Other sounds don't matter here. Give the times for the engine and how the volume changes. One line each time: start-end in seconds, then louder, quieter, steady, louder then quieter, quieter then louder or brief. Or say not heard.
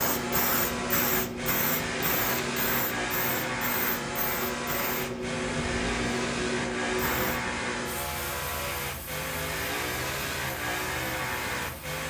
0.0-12.0 steady.